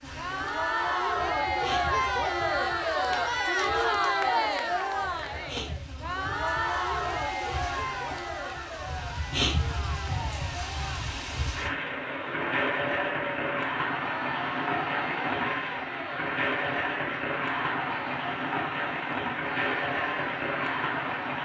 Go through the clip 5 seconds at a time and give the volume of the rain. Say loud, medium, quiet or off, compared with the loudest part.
quiet, medium, loud, loud, loud.